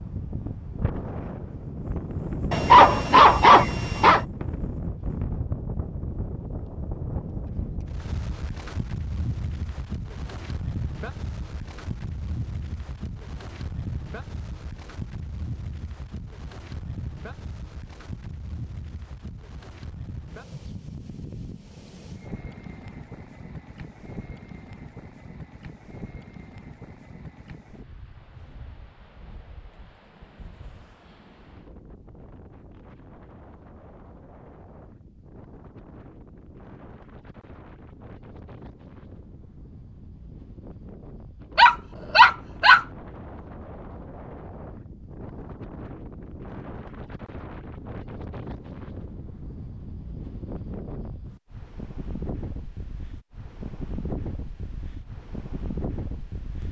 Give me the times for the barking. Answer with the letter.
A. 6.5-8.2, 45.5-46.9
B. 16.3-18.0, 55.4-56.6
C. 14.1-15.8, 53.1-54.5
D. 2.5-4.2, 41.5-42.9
D.